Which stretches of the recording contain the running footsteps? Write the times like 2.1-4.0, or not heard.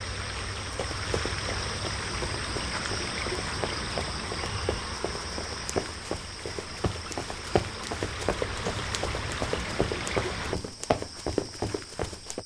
0.6-12.4.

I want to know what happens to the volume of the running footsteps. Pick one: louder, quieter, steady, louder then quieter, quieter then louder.
louder.